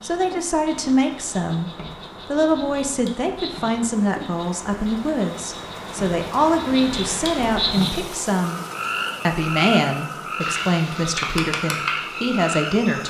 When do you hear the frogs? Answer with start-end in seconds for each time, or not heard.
0.0-13.0.